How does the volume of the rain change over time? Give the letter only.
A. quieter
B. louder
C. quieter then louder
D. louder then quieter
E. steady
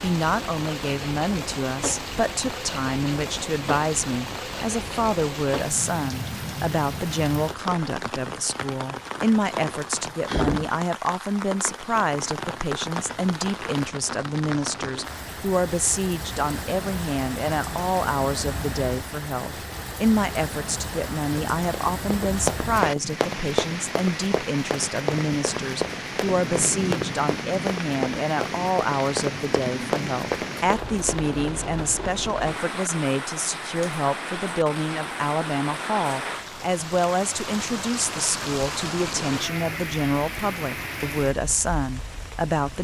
E.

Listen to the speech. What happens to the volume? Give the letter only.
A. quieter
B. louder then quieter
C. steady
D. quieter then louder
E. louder
C.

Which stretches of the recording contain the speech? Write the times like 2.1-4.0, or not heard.
0.0-42.7.